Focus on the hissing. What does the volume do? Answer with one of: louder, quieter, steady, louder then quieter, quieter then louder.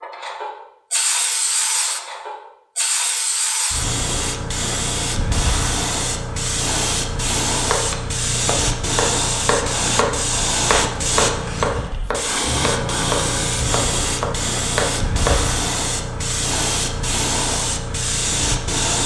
steady.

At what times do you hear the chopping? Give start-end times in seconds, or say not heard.
7.5-15.5.